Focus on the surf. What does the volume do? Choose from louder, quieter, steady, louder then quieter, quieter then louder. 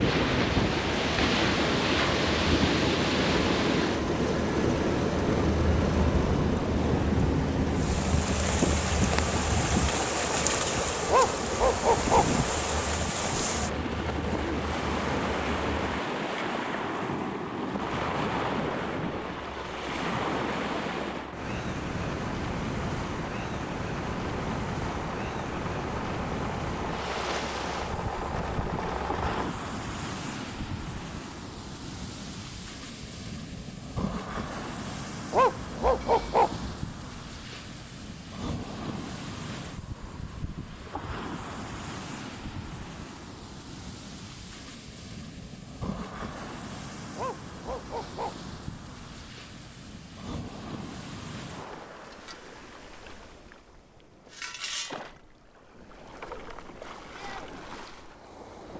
quieter.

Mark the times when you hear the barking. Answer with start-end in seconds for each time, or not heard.
11.1-12.4, 35.3-36.8, 47.1-48.5.